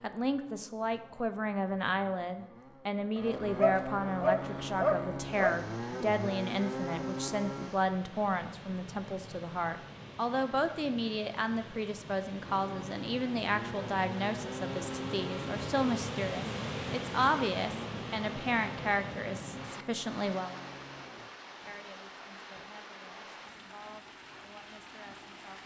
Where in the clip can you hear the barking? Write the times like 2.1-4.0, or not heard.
3.1-5.5.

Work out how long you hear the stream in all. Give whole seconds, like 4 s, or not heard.
20 s.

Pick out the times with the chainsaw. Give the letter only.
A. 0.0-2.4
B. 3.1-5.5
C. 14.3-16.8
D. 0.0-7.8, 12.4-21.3
D.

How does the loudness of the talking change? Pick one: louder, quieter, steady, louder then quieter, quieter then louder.
quieter.